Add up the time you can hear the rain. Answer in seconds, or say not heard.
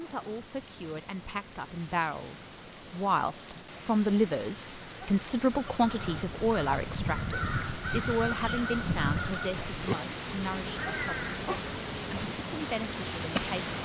14 s.